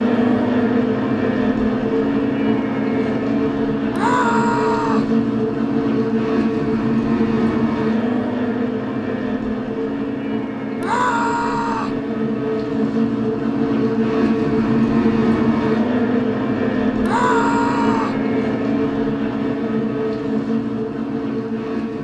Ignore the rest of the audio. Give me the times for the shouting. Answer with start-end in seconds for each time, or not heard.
3.9-5.1, 10.8-12.0, 17.0-18.2.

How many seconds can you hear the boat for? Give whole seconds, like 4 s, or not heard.
22 s.